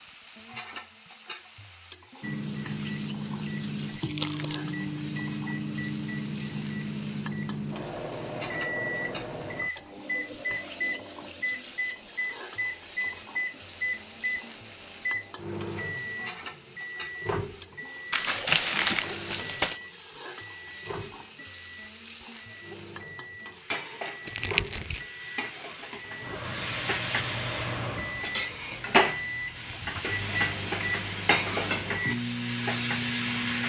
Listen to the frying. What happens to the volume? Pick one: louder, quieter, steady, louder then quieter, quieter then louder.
louder.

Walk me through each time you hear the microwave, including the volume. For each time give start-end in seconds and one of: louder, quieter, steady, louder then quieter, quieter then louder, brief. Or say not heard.
2.2-33.6 quieter then louder.